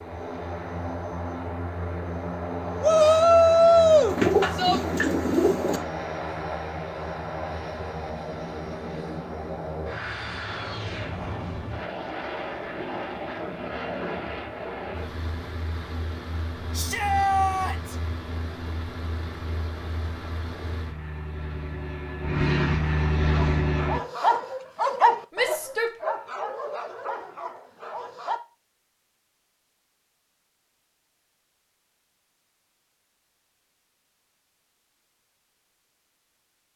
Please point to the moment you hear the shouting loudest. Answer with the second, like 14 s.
4 s.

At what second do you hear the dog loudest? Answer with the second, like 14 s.
25 s.